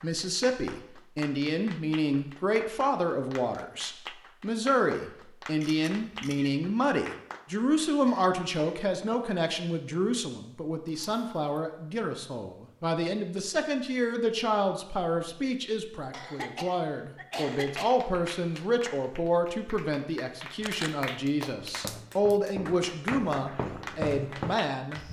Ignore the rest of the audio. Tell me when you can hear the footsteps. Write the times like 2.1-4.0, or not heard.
21.6-25.0.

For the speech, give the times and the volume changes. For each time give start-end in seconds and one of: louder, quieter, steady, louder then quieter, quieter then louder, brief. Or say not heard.
0.0-25.0 steady.